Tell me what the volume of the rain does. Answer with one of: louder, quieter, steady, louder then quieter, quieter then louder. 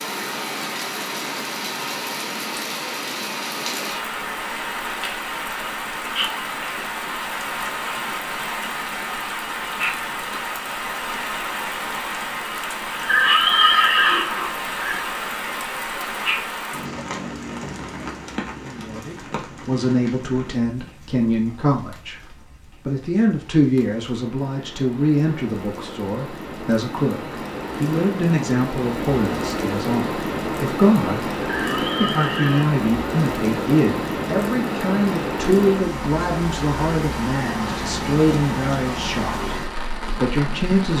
quieter then louder.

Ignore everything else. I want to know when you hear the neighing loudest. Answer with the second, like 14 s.
14 s.